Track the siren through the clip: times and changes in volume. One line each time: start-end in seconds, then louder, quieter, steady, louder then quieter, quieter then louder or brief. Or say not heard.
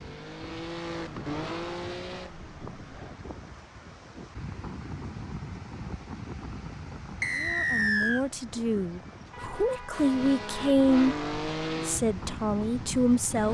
not heard.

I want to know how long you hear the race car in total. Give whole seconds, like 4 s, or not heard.
7 s.